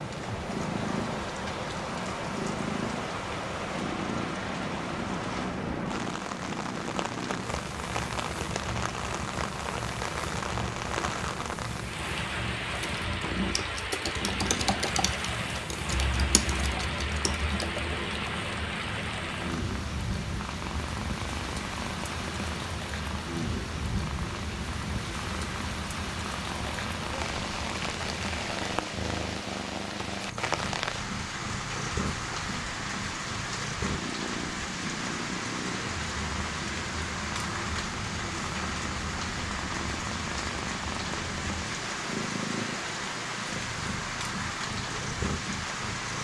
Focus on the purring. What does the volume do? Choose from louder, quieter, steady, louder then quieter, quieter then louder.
steady.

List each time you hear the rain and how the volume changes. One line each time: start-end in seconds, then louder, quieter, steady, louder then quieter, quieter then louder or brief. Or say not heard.
0.0-46.1 steady.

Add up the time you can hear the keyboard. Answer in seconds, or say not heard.
5 s.